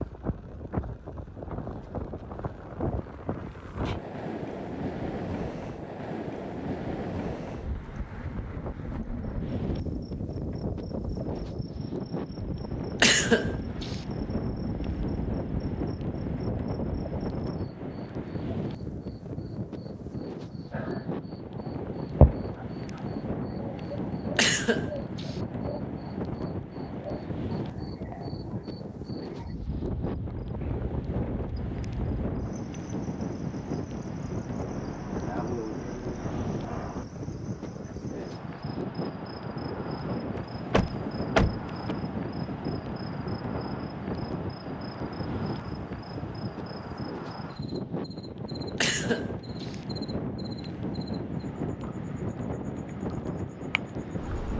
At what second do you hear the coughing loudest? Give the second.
13 s.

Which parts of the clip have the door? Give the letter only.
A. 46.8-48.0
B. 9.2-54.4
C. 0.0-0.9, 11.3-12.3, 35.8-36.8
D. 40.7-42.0
D.